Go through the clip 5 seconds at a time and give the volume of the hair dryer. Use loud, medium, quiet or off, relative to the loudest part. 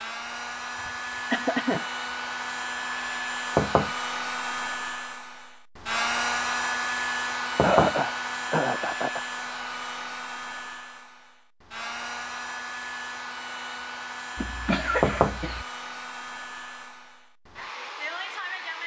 loud, loud, medium, medium.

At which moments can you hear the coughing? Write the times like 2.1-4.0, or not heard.
0.8-1.9, 7.6-9.2, 14.3-15.7.